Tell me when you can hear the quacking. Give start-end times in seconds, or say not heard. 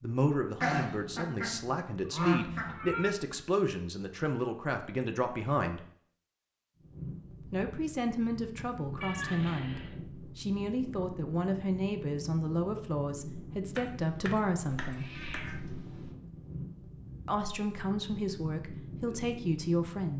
0.6-2.8, 13.8-15.6.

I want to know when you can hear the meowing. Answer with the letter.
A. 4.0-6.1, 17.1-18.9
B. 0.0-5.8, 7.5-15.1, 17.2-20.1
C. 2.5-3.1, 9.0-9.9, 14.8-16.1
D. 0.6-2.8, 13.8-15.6
C.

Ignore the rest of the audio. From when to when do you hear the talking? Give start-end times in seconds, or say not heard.
0.0-5.8, 7.5-15.1, 17.2-20.1.